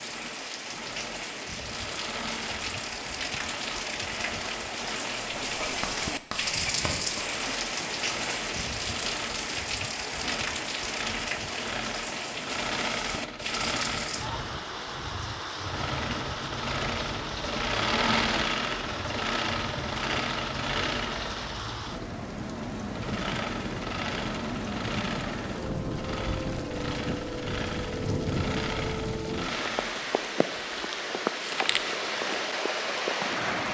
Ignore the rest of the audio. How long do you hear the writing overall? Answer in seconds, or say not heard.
2 s.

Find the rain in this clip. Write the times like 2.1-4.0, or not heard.
0.0-33.6.